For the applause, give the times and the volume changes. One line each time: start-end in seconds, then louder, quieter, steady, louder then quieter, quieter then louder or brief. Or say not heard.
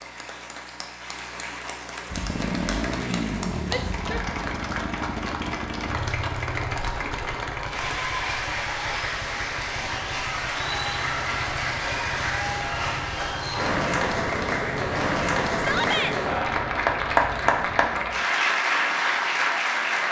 0.0-20.0 louder.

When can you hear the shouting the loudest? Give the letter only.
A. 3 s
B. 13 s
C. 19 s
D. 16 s
D.